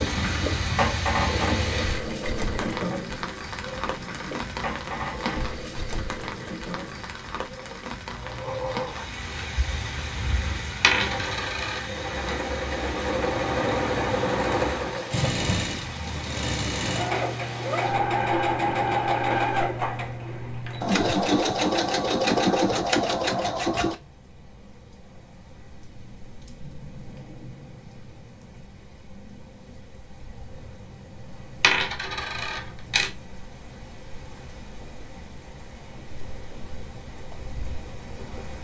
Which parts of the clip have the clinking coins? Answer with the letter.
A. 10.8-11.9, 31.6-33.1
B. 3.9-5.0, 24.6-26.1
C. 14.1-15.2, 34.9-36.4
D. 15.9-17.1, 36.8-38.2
A.